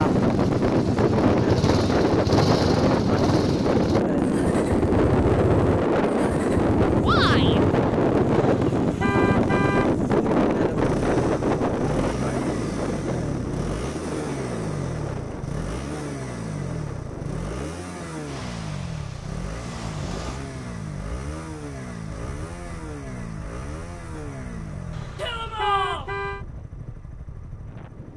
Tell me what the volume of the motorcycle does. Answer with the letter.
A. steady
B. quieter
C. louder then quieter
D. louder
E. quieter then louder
B.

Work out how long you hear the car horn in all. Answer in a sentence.
The car horn can be heard for 3 seconds in total.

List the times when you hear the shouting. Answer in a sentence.
The shouting can be heard from 7.0 to 7.6 s and from 25.1 to 26.1 s.